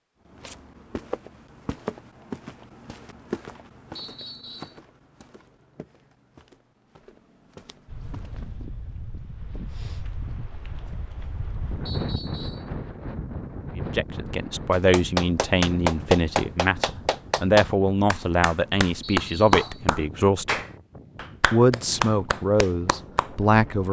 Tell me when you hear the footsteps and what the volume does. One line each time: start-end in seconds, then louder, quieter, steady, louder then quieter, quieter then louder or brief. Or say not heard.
0.2-8.5 quieter.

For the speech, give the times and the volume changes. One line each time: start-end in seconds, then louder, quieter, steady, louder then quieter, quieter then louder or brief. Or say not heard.
13.8-20.6 steady
21.5-23.8 brief.